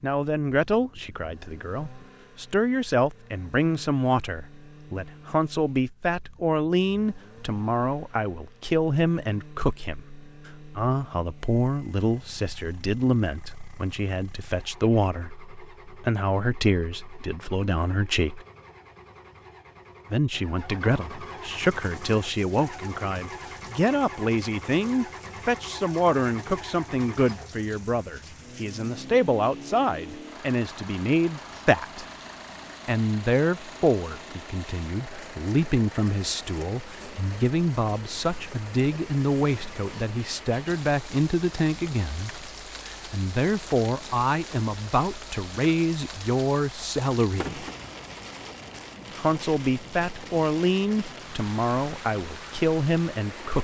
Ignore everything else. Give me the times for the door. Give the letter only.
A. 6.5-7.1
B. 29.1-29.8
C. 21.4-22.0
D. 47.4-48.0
D.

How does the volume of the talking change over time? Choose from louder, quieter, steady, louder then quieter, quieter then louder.
steady.